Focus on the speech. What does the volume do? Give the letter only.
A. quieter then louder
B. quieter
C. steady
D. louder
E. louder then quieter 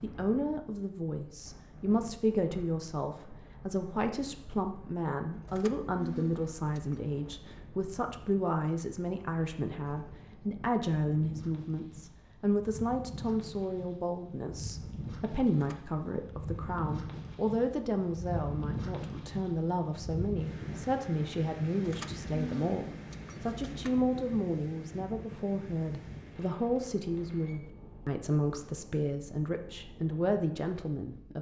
C.